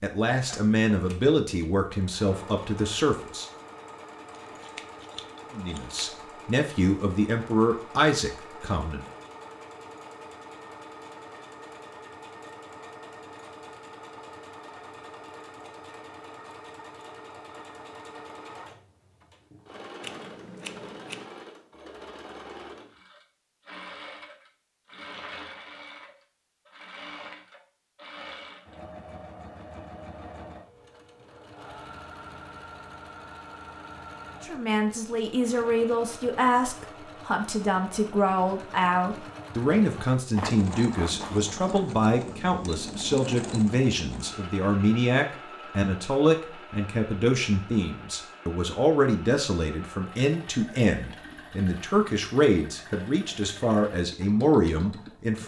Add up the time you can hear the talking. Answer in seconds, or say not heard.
28 s.